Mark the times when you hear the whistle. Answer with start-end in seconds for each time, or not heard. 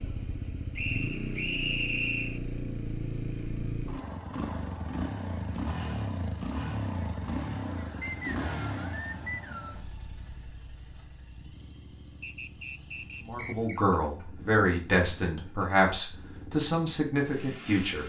0.8-2.4, 8.0-9.8, 12.2-13.8.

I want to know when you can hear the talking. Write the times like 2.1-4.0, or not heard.
13.2-18.0.